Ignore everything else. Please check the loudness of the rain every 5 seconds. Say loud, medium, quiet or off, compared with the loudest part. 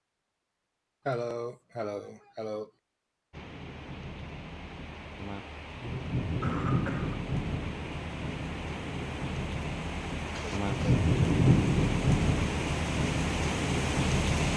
quiet, medium, loud.